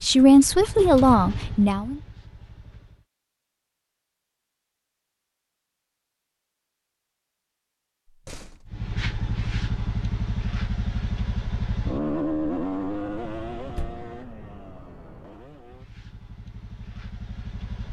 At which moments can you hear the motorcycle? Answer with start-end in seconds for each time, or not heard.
0.0-3.0, 8.7-17.8.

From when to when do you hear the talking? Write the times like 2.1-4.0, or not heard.
0.0-2.0.